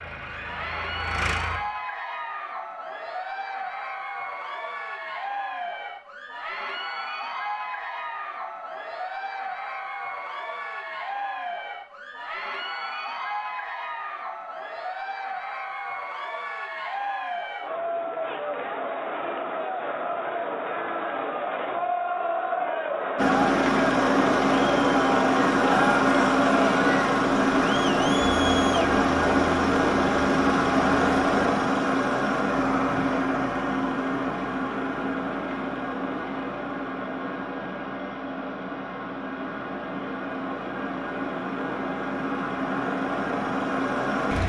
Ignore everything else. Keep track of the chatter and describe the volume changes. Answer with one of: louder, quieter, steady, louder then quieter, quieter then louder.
louder.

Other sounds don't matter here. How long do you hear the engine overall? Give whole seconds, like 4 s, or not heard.
23 s.